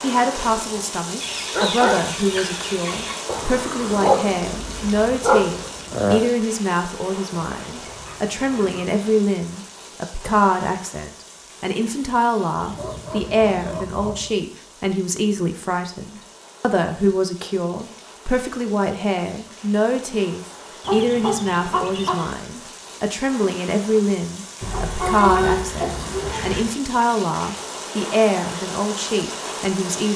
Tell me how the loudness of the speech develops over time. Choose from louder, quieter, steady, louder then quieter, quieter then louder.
steady.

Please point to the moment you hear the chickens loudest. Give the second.
25 s.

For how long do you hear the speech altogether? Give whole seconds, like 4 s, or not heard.
30 s.